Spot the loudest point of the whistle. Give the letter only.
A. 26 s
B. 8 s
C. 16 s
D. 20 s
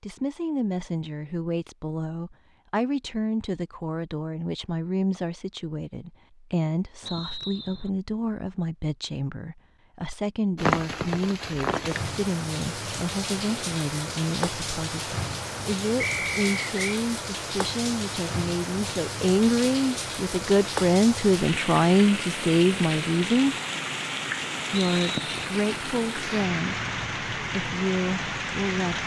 C.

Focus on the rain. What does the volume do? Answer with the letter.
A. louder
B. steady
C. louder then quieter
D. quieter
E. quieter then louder
B.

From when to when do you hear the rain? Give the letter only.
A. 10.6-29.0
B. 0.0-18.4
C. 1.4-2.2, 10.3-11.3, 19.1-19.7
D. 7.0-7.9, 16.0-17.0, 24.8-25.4
A.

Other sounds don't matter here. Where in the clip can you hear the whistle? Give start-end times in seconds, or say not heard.
7.0-7.9, 16.0-17.0, 24.8-25.4.